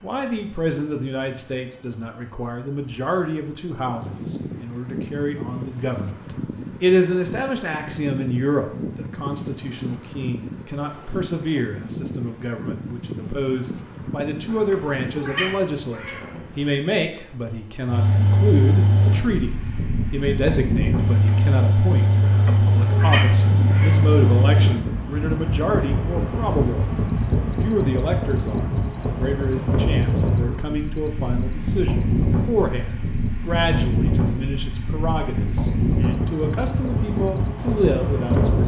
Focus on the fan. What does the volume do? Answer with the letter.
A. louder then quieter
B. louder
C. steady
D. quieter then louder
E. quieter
C.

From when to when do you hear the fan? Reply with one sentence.
The fan can be heard from 17.9 to 38.6 s.